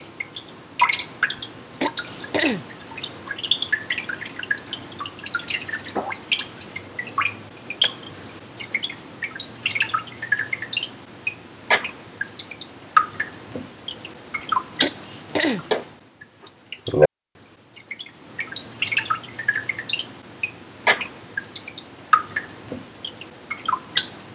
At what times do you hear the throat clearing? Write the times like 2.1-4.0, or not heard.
1.8-2.6, 14.8-15.7.